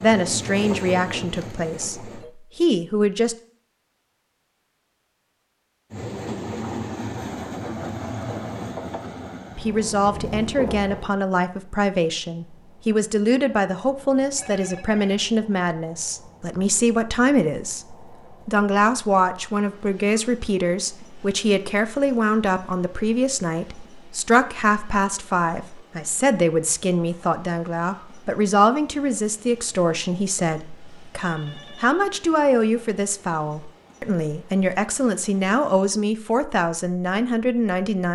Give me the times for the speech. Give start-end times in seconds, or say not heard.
0.0-3.4, 9.6-38.1.